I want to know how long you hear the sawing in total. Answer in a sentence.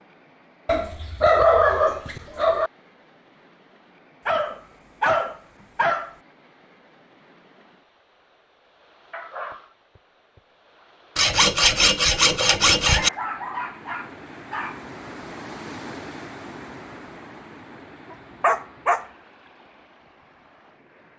You can hear the sawing for 2 seconds altogether.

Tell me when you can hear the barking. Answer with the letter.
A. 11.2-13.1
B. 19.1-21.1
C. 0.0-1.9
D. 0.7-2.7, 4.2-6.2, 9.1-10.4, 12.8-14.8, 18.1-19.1
D.